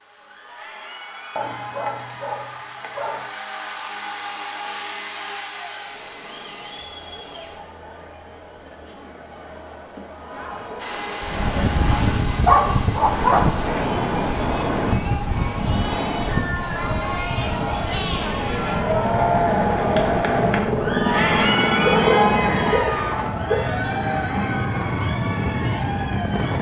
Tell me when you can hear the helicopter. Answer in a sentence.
The helicopter can be heard from 0.0 to 7.6 s and from 10.8 to 22.7 s.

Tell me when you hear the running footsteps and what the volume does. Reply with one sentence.
You can't hear the running footsteps here.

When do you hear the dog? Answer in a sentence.
You can hear the dog from 1.4 to 3.2 s, from 11.9 to 13.5 s and from 21.8 to 23.6 s.